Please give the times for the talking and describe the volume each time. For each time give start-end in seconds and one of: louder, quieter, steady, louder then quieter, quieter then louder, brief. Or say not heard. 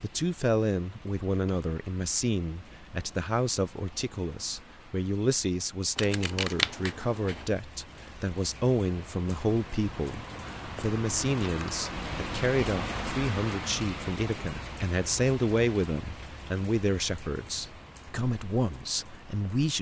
0.0-19.7 steady.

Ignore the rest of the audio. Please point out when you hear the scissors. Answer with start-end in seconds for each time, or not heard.
6.0-7.5.